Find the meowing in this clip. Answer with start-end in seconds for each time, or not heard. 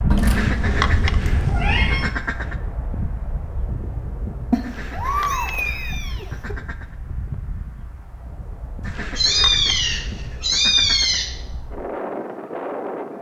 0.1-2.1, 4.5-6.5, 9.2-11.3.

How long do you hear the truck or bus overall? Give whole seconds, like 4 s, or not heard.
not heard.